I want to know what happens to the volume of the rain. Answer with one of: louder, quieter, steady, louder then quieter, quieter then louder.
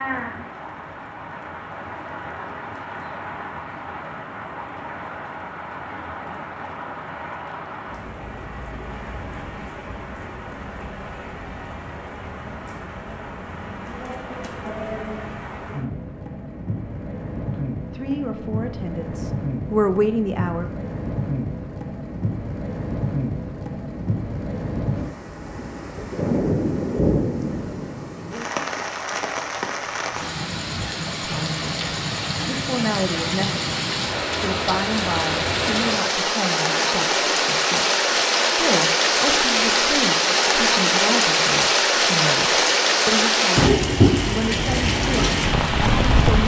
louder.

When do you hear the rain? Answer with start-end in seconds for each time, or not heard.
0.0-46.4.